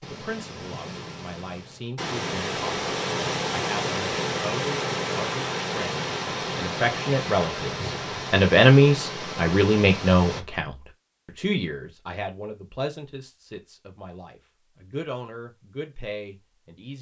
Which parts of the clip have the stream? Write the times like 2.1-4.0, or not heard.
0.0-10.4.